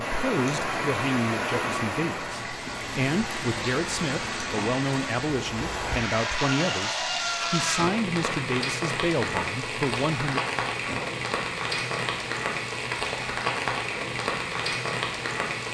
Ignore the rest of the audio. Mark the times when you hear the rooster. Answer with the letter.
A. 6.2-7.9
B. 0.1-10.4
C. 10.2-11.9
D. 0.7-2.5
A.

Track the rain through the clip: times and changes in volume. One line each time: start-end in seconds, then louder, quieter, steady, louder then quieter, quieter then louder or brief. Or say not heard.
0.0-15.6 steady.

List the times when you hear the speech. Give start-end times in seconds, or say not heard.
0.1-10.4.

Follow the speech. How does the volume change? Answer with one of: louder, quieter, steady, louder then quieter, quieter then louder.
steady.